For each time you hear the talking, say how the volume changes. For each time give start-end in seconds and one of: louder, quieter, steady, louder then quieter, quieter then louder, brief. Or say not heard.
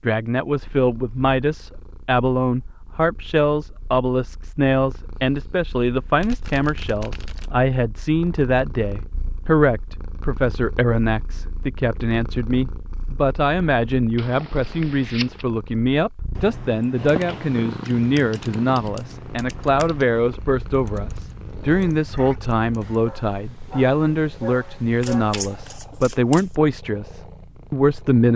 0.0-28.3 steady.